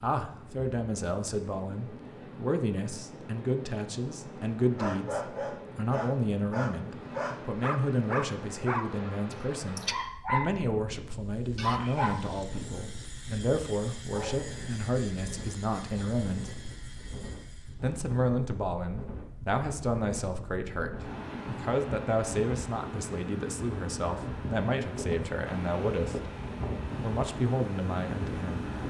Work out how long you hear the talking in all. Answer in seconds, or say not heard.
27 s.